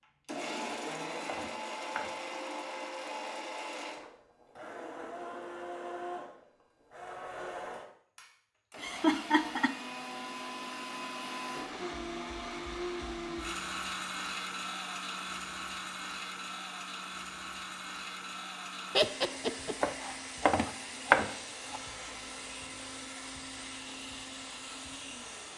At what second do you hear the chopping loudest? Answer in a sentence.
The volume of the chopping peaks at 21 seconds.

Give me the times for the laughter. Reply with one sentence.
The laughter can be heard from 8.8 to 9.8 s and from 18.9 to 19.8 s.